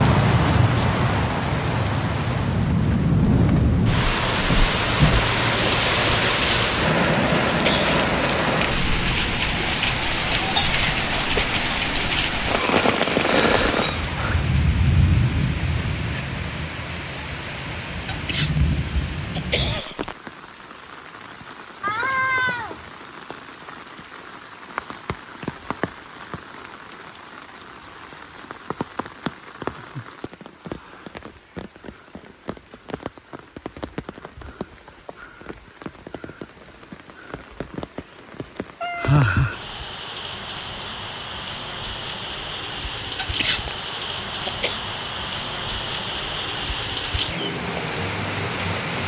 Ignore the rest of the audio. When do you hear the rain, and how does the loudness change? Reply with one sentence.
The rain can be heard from 0.0 to 49.0 s, getting quieter then louder.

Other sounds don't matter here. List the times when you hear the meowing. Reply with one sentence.
The meowing can be heard from 12.6 to 14.6 s, from 21.8 to 23.1 s and from 38.8 to 39.2 s.